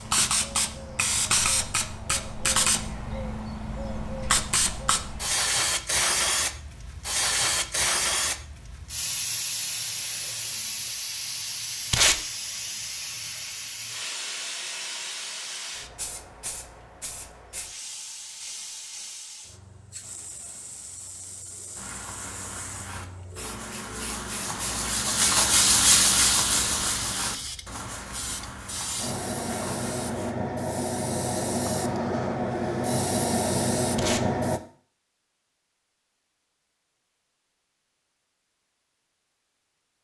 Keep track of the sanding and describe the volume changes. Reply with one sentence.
The volume of the sanding goes up, then down.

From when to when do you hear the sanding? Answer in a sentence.
The sanding can be heard from 21.8 to 30.4 s.